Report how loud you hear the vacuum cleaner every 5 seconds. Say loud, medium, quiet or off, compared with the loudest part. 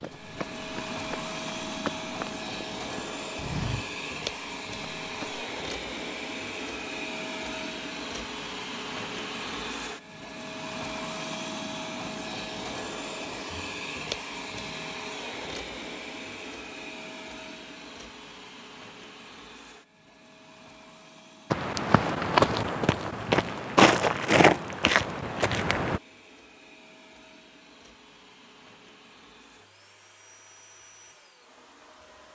loud, loud, loud, medium, quiet, quiet, quiet.